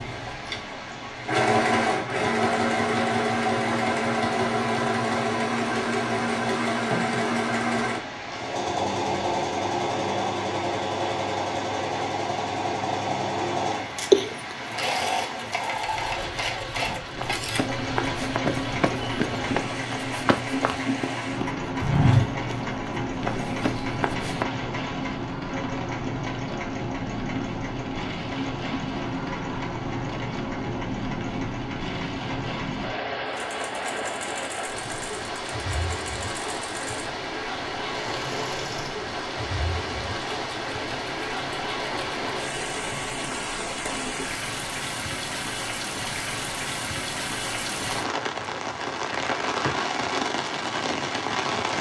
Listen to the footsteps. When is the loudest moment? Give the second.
22 s.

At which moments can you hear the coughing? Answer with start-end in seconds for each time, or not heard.
13.7-14.6.